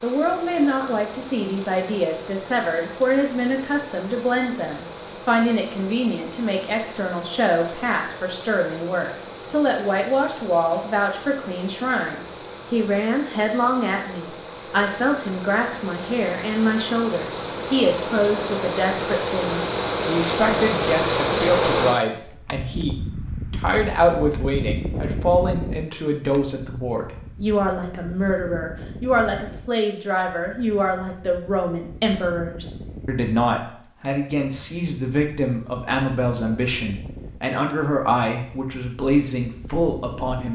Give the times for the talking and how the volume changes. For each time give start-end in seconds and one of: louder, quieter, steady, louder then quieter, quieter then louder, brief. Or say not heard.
0.0-40.5 steady.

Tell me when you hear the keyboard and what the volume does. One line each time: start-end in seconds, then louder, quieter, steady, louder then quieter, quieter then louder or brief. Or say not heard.
not heard.